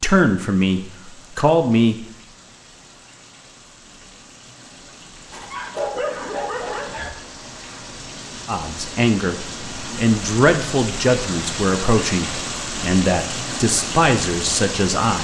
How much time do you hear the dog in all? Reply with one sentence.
The dog can be heard for 2 seconds in total.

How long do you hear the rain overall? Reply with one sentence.
You can hear the rain for 15 seconds altogether.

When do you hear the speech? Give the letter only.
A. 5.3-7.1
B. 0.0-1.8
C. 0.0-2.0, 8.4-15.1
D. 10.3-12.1
C.